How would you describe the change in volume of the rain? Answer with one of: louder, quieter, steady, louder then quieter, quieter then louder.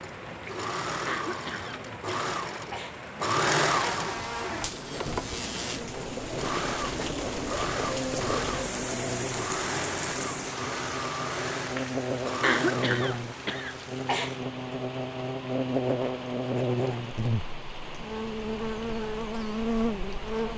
louder then quieter.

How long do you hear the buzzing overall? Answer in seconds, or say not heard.
17 s.